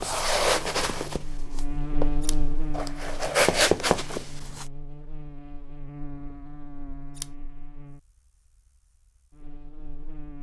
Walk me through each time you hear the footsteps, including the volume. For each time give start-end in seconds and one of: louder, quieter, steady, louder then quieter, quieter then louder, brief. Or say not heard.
0.0-4.7 quieter then louder.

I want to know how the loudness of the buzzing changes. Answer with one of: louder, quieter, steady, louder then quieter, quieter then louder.
quieter.